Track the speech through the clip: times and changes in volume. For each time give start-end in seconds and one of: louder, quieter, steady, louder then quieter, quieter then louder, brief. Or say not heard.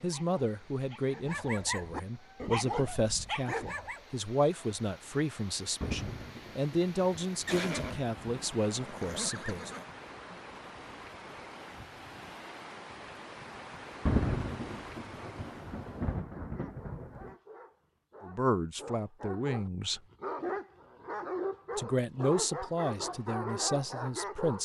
0.0-9.7 steady
18.2-20.0 brief
21.8-24.6 brief.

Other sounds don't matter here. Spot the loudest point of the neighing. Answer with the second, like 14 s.
8 s.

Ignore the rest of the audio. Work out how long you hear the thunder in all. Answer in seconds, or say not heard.
6 s.